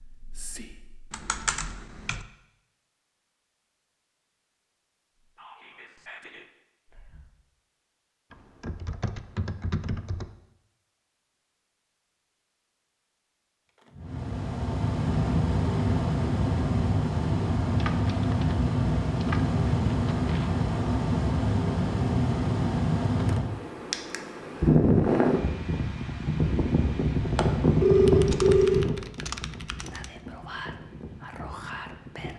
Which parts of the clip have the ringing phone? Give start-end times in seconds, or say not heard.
27.4-28.9.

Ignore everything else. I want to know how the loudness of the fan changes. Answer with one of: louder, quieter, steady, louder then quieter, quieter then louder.
quieter.